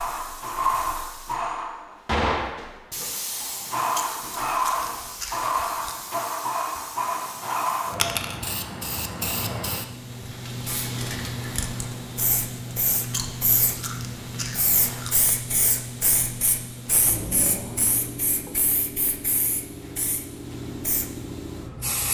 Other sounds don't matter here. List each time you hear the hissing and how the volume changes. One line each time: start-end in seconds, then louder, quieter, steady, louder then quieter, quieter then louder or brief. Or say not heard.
0.0-22.0 quieter.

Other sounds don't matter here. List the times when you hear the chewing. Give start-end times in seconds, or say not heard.
4.0-6.0, 13.1-15.1.